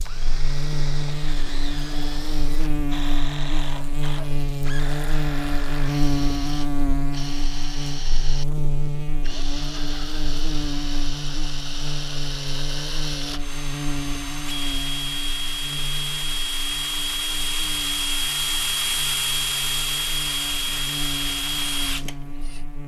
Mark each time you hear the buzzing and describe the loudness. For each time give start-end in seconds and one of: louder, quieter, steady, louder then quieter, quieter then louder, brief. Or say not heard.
0.0-22.8 quieter.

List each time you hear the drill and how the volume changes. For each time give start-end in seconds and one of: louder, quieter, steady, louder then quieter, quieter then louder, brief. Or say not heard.
0.0-22.6 louder.